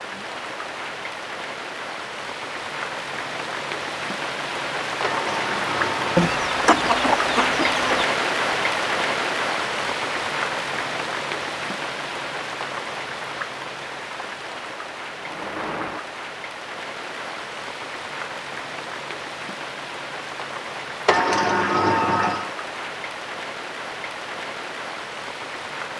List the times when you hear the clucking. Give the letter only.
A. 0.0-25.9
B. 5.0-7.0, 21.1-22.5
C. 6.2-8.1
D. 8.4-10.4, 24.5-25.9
C.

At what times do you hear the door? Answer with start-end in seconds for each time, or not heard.
5.0-7.0, 21.1-22.5.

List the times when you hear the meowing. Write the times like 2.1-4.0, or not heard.
not heard.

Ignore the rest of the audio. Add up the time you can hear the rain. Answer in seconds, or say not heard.
26 s.